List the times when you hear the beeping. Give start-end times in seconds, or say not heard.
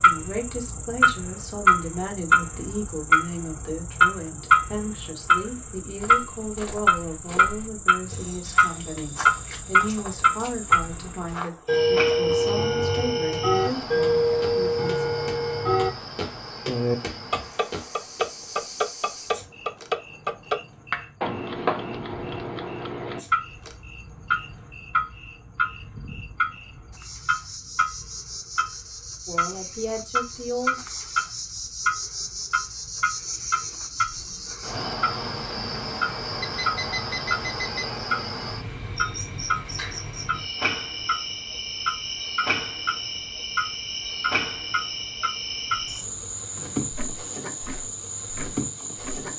36.4-37.9.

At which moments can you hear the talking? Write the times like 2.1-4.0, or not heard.
0.0-15.1, 29.2-30.8.